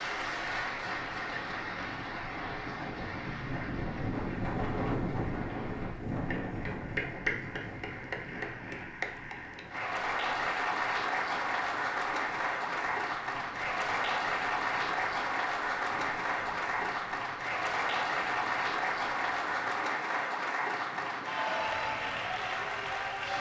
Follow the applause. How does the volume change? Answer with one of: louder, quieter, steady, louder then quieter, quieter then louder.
louder.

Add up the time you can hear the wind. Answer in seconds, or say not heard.
23 s.